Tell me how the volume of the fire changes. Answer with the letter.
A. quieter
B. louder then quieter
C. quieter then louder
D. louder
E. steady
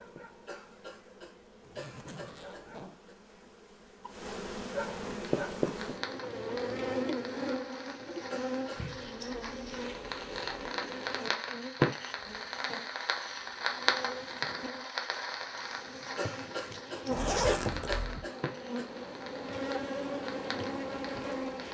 B.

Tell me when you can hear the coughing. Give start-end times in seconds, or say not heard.
0.5-3.1, 8.3-8.9, 16.1-18.9.